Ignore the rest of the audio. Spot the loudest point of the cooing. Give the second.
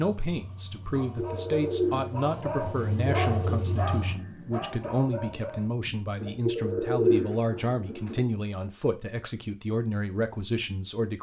7 s.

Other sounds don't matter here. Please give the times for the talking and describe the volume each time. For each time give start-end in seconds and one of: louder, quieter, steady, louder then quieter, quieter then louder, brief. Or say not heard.
0.0-11.1 steady.